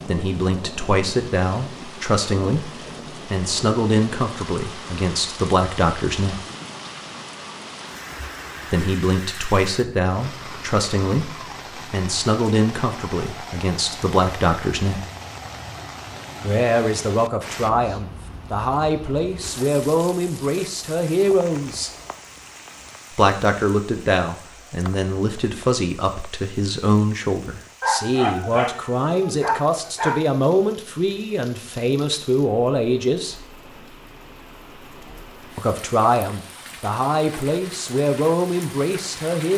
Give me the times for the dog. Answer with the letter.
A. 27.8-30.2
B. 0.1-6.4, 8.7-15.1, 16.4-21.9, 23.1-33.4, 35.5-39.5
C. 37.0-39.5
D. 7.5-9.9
A.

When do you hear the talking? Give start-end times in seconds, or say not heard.
0.1-6.4, 8.7-15.1, 16.4-21.9, 23.1-33.4, 35.5-39.5.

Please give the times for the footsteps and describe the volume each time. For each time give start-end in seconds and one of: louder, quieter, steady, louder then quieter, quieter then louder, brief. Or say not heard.
not heard.